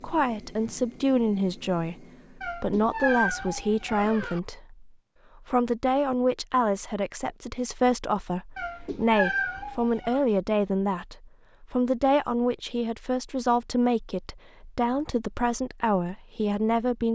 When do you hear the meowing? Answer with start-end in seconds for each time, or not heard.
2.4-4.4, 8.6-10.2.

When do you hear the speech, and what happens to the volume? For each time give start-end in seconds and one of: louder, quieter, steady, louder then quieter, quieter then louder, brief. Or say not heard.
0.0-17.0 steady.